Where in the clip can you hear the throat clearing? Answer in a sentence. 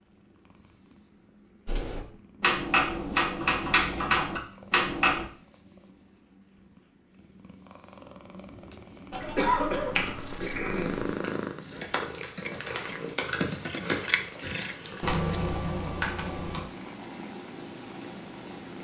You can hear the throat clearing from 9.3 to 11.0 s.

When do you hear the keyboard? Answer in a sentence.
The keyboard can be heard from 1.6 to 5.2 s and from 9.1 to 16.6 s.